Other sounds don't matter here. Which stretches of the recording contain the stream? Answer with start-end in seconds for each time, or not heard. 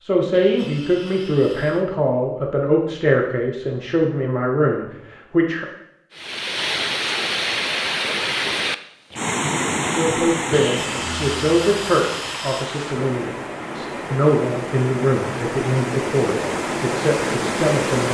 6.1-18.0.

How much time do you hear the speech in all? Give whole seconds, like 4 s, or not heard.
14 s.